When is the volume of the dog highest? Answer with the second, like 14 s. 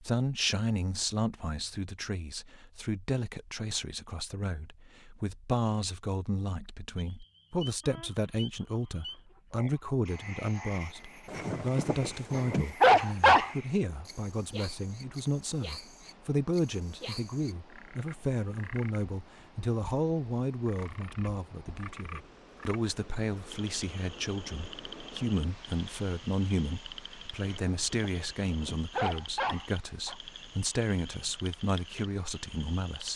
13 s.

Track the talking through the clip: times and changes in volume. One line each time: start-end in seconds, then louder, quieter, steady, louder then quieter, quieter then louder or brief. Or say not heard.
0.0-33.1 steady.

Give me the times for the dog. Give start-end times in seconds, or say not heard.
11.3-13.5, 27.4-30.1.